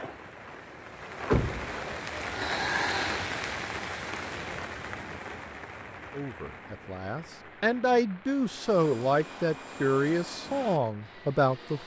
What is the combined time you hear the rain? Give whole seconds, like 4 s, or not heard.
12 s.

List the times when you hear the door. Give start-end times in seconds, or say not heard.
1.2-2.0.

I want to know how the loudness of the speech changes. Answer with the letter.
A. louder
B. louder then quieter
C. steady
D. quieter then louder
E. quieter
A.